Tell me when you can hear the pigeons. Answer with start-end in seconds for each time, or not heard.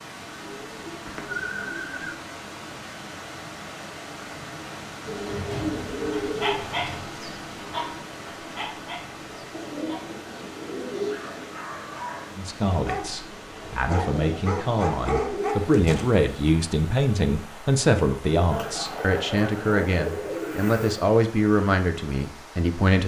0.4-2.1, 5.0-7.0, 9.5-11.5, 14.0-15.7, 18.5-21.1.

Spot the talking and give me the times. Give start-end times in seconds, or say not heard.
12.3-23.0.